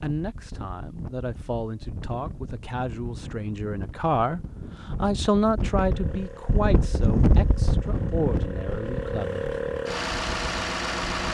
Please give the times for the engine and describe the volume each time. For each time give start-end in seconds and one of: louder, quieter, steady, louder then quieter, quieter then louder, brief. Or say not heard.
5.8-11.2 louder.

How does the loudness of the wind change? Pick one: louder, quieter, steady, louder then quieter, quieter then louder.
louder then quieter.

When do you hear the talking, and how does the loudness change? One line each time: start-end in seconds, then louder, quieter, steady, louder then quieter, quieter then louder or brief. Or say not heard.
0.0-9.4 louder then quieter.